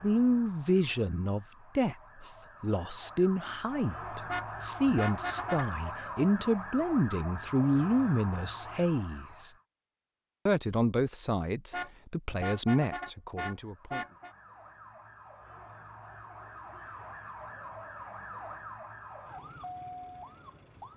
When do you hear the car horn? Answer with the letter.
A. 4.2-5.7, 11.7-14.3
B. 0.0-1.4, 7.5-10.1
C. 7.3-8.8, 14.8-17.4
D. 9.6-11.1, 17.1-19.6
A.